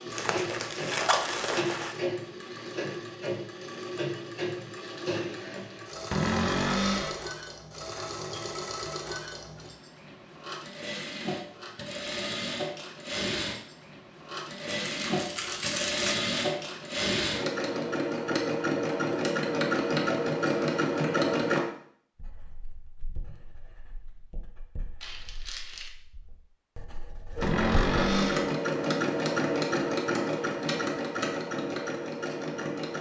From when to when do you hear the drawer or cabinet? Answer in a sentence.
The drawer or cabinet can be heard from 6.1 to 7.2 s and from 27.4 to 28.6 s.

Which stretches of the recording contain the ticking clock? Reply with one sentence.
You can't hear the ticking clock here.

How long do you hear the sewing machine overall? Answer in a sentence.
The sewing machine can be heard for 27 seconds in total.